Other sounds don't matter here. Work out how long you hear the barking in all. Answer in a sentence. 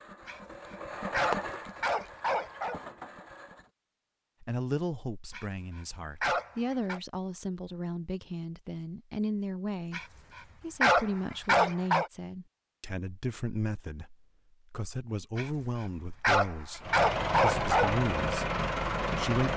The barking can be heard for 9 seconds in total.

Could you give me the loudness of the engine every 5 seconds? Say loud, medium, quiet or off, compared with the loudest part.
medium, off, off, loud.